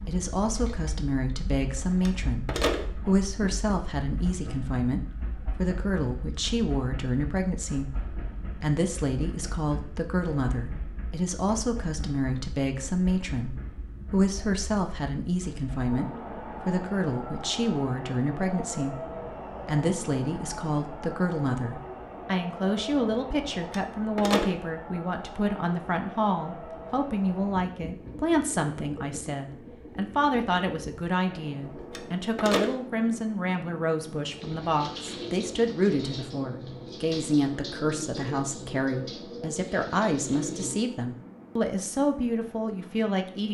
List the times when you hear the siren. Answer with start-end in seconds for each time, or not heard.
not heard.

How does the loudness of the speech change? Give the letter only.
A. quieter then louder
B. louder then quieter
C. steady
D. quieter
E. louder
C.